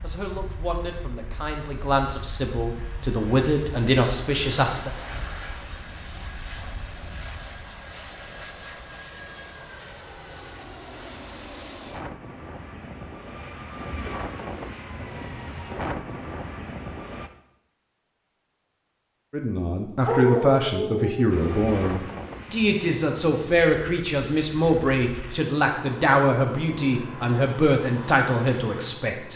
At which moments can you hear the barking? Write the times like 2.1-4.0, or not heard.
20.1-21.2.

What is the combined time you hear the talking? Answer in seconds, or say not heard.
15 s.